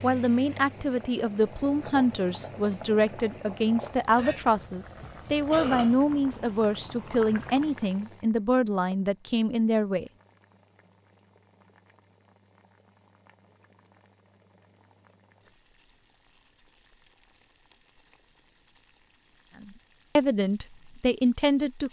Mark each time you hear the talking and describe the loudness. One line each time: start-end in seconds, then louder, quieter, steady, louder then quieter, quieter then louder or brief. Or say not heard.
0.0-10.1 steady
19.6-21.8 brief.